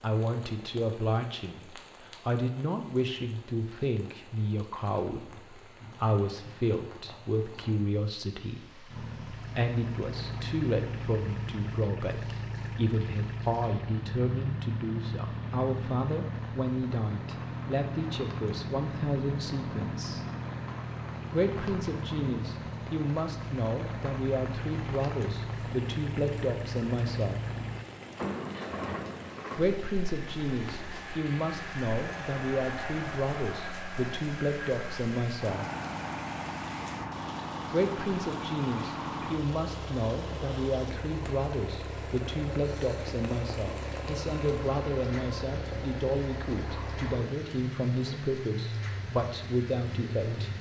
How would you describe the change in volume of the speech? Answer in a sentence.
The loudness of the speech stays about the same.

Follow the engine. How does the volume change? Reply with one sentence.
The volume of the engine stays about the same.